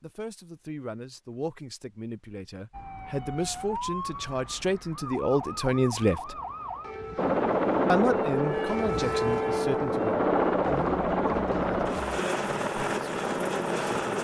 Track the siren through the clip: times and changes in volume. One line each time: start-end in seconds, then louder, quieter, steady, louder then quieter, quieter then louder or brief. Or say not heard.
2.7-12.2 louder then quieter.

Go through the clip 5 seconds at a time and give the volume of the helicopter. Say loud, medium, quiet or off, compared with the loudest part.
off, loud, loud.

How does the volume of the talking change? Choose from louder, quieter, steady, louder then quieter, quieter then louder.
louder then quieter.